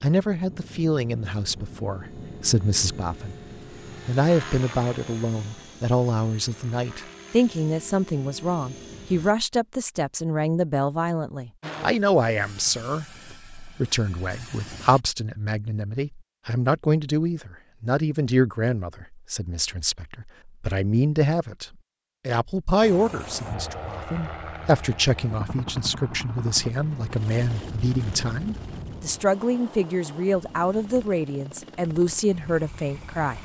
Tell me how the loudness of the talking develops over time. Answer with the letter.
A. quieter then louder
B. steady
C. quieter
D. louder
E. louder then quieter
B.